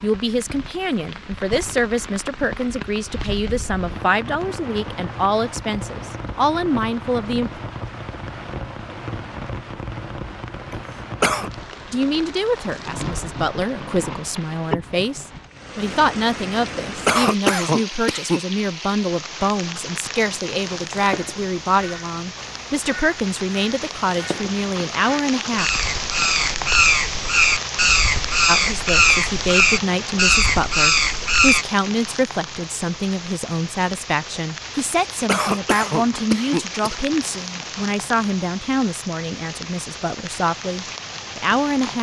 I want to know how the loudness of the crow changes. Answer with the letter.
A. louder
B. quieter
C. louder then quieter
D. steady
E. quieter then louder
A.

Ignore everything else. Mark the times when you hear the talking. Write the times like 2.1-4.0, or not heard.
0.0-7.6, 11.9-25.7, 28.4-41.9.